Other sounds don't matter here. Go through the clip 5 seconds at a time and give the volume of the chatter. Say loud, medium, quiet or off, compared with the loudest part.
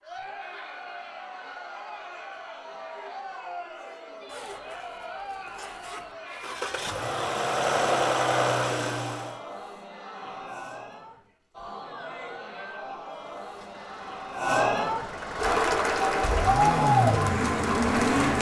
quiet, quiet, medium, loud.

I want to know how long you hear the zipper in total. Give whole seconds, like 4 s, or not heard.
2 s.